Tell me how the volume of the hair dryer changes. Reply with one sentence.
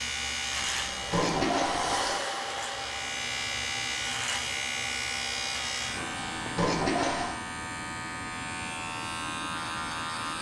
The volume of the hair dryer goes up, then down.